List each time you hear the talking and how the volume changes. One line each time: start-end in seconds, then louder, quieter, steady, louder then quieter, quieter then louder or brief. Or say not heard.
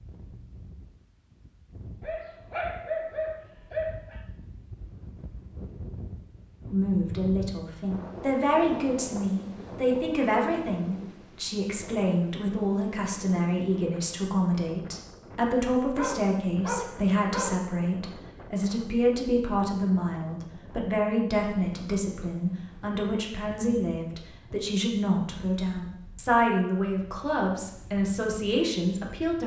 6.7-29.4 steady.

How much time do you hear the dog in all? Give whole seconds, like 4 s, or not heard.
4 s.